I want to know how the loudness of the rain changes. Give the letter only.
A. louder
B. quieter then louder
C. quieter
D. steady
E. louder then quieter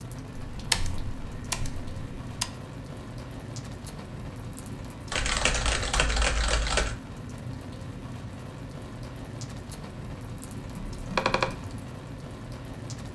D.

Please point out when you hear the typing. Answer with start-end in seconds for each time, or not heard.
0.5-2.5, 5.1-7.0, 10.8-11.6.